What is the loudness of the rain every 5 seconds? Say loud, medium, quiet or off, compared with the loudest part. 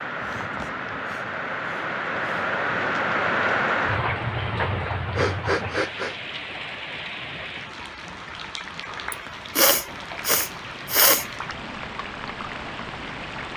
loud, medium, medium.